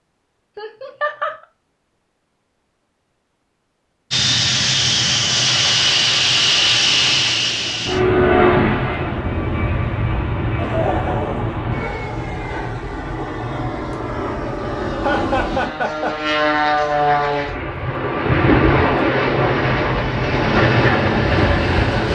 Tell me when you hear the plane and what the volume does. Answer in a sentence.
The plane can be heard from 4.1 to 22.1 s, getting quieter then louder.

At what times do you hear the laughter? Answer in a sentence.
The laughter can be heard from 0.6 to 1.4 s, from 10.6 to 11.6 s and from 15.0 to 16.2 s.